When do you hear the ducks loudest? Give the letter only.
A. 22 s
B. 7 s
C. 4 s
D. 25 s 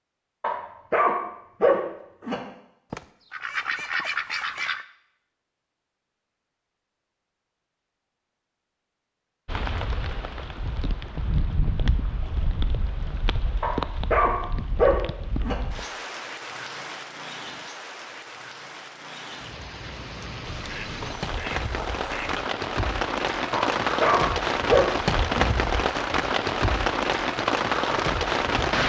C.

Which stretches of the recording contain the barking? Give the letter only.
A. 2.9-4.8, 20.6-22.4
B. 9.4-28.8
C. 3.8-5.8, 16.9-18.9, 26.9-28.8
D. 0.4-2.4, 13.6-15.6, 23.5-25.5
D.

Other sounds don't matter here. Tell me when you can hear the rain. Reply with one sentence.
The rain can be heard from 9.4 to 28.8 s.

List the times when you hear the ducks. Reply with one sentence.
The ducks can be heard from 2.9 to 4.8 s and from 20.6 to 22.4 s.